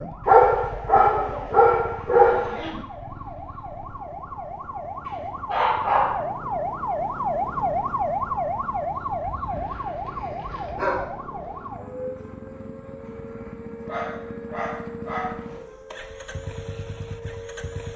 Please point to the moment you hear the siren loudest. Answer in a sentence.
The volume of the siren peaks at 8 seconds.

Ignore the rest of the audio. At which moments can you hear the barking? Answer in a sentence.
You can hear the barking from 0.2 to 2.7 s, from 5.5 to 6.2 s, from 9.2 to 11.1 s and from 13.8 to 15.6 s.